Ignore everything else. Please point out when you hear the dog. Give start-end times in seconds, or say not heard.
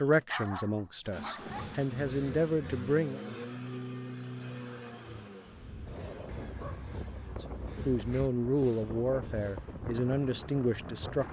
0.2-1.8, 6.2-8.3.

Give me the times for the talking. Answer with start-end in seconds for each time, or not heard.
0.0-3.5, 7.2-11.2.